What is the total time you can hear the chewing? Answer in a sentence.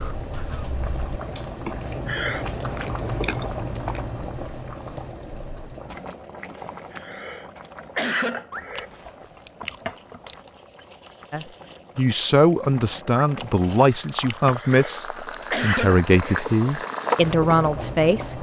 The chewing can be heard for 5 seconds in total.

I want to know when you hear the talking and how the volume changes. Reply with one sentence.
The talking can be heard from 11.3 to 18.3 s, at a steady volume.